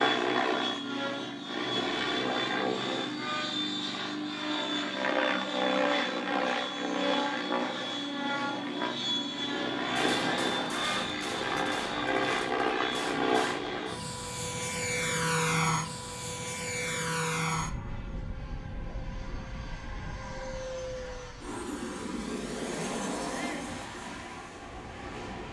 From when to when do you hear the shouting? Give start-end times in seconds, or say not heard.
23.2-23.7.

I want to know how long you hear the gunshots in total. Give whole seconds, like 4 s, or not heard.
4 s.